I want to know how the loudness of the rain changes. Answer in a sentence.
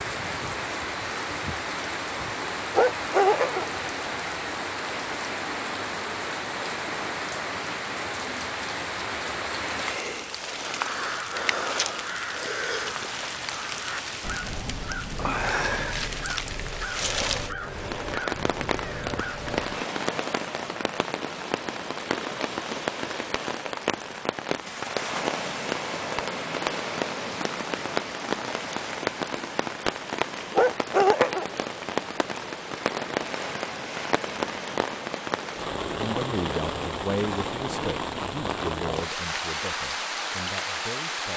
The volume of the rain stays about the same.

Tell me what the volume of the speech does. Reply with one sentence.
The loudness of the speech goes down.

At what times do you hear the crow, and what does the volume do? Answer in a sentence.
You can hear the crow from 10.7 to 19.9 s, at a steady volume.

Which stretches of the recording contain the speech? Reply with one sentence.
You can hear the speech from 35.9 to 41.3 s.